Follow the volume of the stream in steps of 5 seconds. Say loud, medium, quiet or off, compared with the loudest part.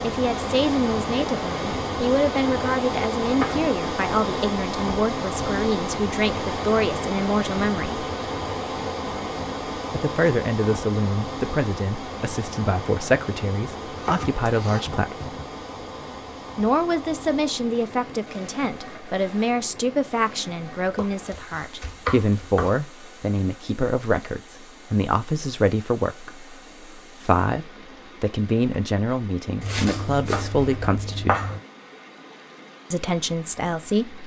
loud, loud, medium, medium, quiet, quiet, quiet.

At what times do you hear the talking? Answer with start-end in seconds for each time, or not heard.
0.0-8.1, 9.9-15.3, 16.6-31.4, 32.9-34.2.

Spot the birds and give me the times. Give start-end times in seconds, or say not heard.
not heard.